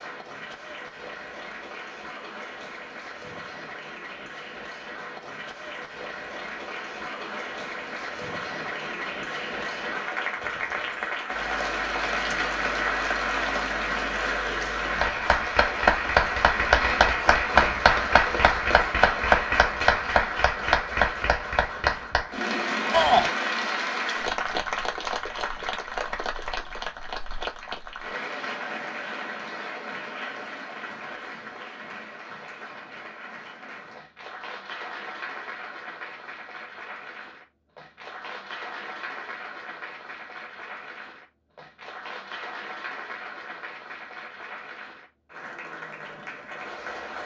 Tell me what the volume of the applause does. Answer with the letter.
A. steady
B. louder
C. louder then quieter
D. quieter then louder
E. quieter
C.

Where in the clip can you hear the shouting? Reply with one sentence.
The shouting can be heard from 22.9 to 23.3 s.